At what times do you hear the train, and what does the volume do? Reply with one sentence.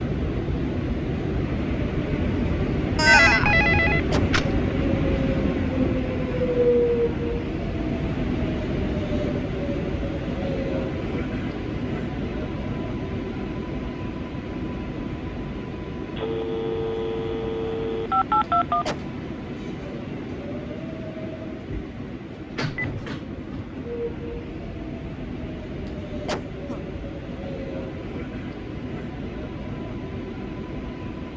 The train can be heard from 0.0 to 31.3 s, getting quieter.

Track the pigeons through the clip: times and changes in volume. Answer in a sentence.
You can't hear the pigeons here.